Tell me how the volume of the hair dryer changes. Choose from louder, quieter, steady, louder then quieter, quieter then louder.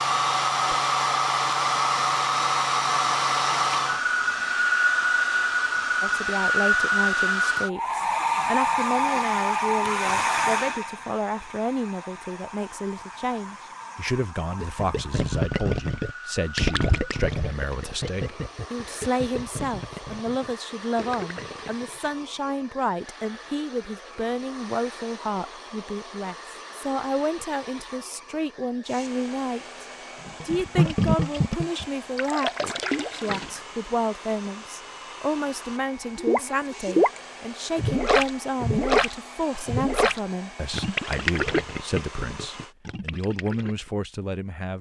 quieter.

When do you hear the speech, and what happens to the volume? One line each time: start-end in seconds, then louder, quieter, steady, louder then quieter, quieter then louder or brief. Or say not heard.
6.0-29.9 steady
30.4-44.7 steady.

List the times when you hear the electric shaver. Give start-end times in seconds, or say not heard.
not heard.